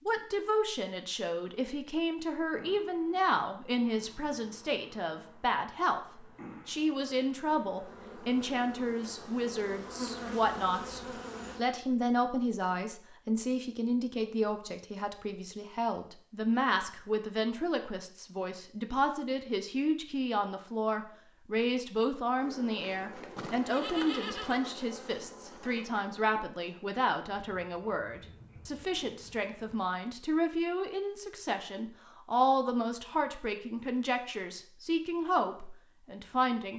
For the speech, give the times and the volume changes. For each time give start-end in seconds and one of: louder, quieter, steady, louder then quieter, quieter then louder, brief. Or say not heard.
0.1-36.7 steady.